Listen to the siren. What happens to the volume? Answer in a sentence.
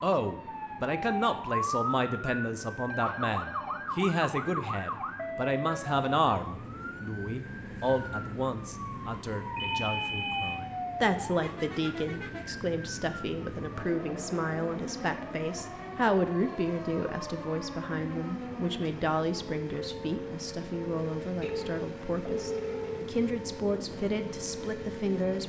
The loudness of the siren goes down.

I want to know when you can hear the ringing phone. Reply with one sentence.
The ringing phone can be heard from 2.9 to 3.9 s, from 9.6 to 10.6 s and from 21.4 to 23.1 s.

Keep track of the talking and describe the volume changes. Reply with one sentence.
The volume of the talking stays about the same.